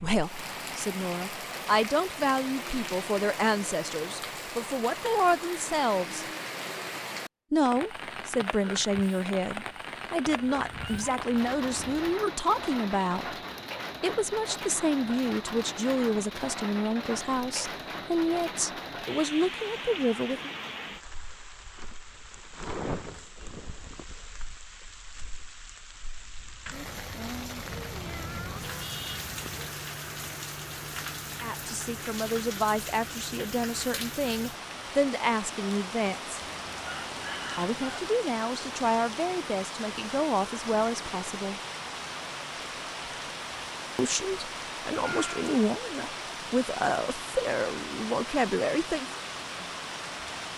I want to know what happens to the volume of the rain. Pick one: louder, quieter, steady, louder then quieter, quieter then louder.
steady.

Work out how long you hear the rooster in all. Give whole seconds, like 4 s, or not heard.
2 s.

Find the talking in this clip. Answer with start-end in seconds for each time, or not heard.
0.0-6.2, 7.5-13.3, 14.0-20.5, 31.4-36.4, 37.5-41.6, 44.0-49.1.